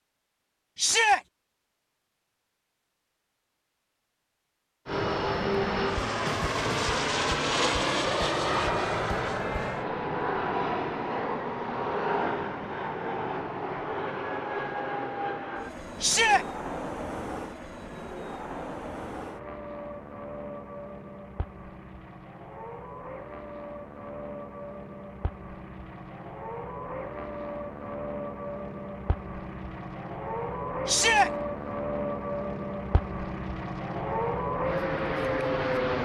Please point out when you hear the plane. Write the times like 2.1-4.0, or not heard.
4.8-35.9.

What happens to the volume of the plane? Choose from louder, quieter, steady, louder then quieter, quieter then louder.
quieter then louder.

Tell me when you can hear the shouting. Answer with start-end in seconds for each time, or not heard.
0.8-1.2, 16.0-16.4, 30.9-31.3.